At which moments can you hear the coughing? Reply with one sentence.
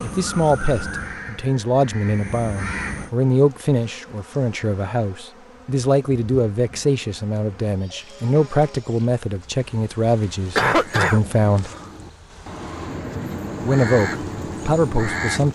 You can hear the coughing from 10.6 to 11.9 s.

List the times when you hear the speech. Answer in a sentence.
You can hear the speech from 0.0 to 11.7 s and from 13.6 to 15.5 s.